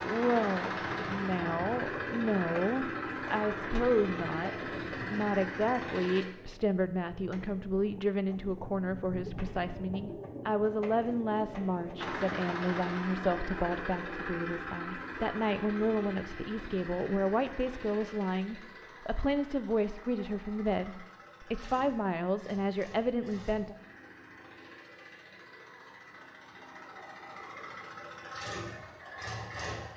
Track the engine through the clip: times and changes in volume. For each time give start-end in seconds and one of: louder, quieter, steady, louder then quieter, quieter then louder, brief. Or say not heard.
0.0-6.2 steady
11.9-29.9 quieter then louder.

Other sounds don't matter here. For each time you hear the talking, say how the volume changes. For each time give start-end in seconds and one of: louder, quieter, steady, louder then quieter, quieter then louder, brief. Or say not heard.
0.0-23.8 steady.